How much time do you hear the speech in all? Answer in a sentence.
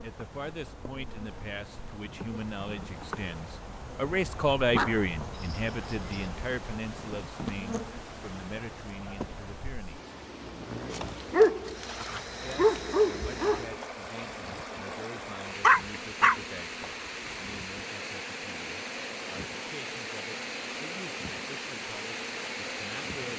The speech can be heard for 21 seconds in total.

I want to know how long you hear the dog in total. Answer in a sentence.
You can hear the dog for 5 seconds altogether.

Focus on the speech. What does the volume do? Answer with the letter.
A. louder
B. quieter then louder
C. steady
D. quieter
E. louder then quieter
E.